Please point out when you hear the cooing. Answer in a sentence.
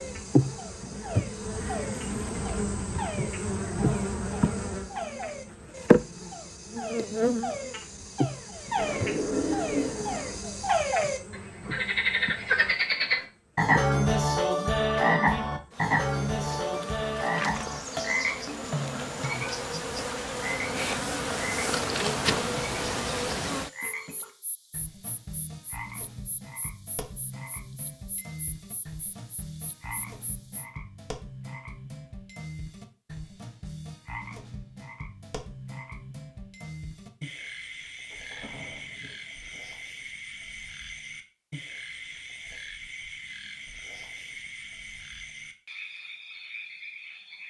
The cooing can be heard from 8.8 to 10.4 s and from 38.1 to 39.6 s.